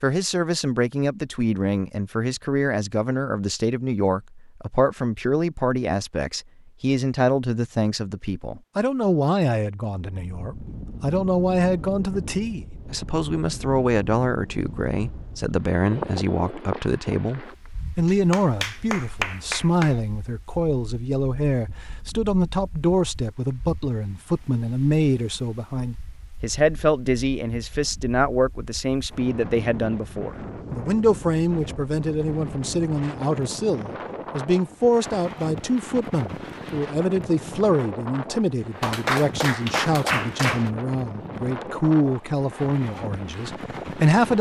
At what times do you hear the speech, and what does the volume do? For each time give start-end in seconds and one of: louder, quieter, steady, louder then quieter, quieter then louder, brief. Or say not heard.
0.0-44.3 steady.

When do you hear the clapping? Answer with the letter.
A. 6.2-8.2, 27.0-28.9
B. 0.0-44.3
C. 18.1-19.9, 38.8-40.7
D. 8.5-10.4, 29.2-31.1
C.